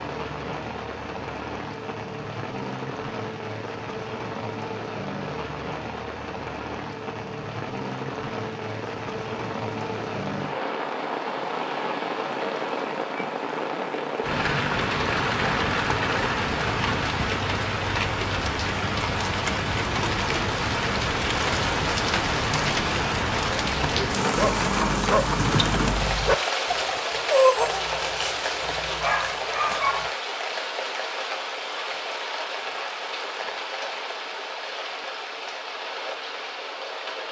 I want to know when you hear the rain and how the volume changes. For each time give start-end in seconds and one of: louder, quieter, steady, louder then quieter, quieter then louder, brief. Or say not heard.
0.0-37.2 louder then quieter.